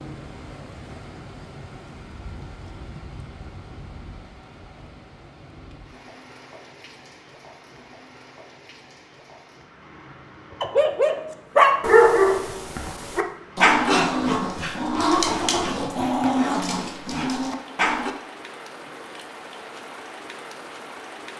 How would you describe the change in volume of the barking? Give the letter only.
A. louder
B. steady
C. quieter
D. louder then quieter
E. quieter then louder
C.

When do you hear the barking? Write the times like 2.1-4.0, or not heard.
10.6-18.1.